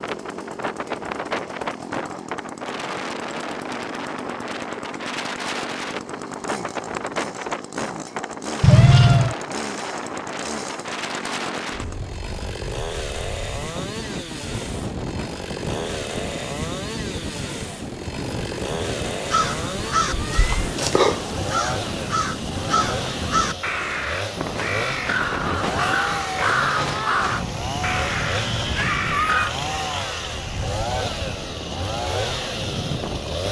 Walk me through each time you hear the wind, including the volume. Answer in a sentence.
The wind can be heard from 0.0 to 33.4 s, at a steady volume.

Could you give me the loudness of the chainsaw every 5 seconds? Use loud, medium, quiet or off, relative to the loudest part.
medium, medium, medium, loud, loud, loud, loud.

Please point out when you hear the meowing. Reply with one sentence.
The meowing can be heard from 8.6 to 9.3 s, from 20.1 to 20.7 s and from 28.6 to 29.6 s.